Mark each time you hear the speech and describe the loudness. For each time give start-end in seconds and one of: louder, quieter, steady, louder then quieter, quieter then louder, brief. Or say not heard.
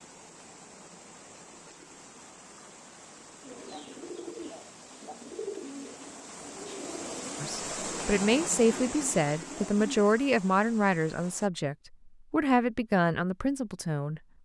7.4-14.2 steady.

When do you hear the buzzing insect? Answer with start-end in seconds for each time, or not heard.
not heard.